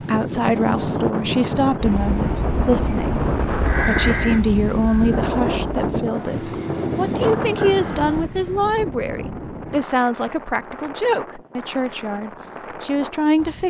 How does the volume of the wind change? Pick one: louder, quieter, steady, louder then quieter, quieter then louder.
quieter.